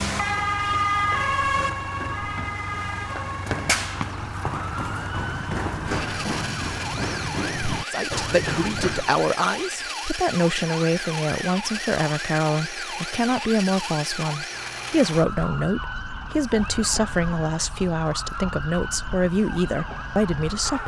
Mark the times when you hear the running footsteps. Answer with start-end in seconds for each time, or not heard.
0.2-9.2.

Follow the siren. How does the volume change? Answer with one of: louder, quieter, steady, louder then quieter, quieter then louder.
quieter.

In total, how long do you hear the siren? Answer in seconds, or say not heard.
21 s.